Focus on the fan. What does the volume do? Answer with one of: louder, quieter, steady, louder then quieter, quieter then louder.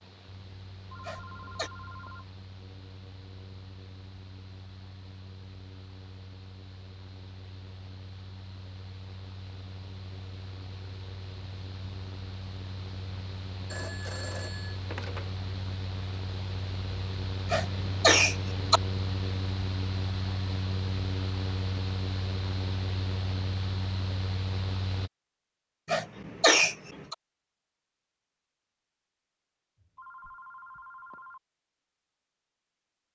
louder.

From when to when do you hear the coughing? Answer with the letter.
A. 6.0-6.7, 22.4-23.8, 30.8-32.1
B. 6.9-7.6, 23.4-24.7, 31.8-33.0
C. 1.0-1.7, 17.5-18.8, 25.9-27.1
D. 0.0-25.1
C.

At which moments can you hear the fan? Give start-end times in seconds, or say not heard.
0.0-25.1.